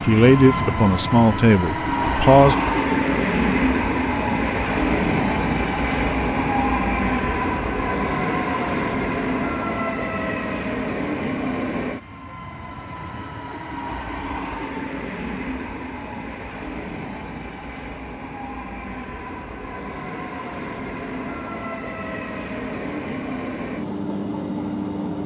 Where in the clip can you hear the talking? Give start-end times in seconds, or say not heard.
0.0-2.5.